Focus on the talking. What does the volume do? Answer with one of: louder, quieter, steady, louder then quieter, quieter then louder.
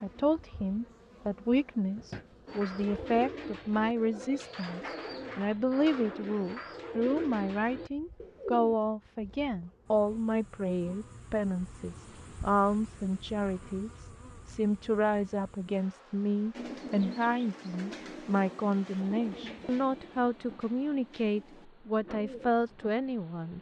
steady.